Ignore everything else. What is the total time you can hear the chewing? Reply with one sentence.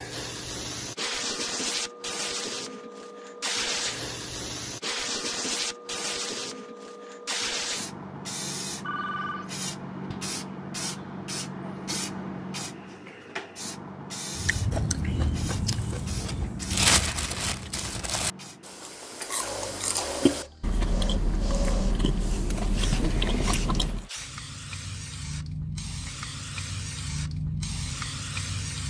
You can hear the chewing for 10 seconds altogether.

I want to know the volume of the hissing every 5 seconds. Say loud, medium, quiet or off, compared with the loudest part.
loud, loud, loud, medium, medium, loud.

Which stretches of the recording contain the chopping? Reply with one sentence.
The chopping can't be heard in this clip.